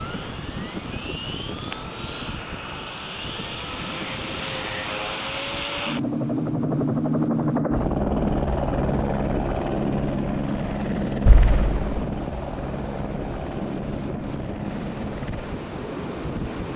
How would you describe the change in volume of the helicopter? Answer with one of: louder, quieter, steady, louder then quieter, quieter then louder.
louder then quieter.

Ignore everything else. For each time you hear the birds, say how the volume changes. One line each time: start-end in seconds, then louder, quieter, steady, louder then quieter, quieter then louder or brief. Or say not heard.
not heard.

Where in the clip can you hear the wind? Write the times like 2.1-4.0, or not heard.
0.0-16.7.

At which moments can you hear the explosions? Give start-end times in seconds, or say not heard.
11.2-12.1.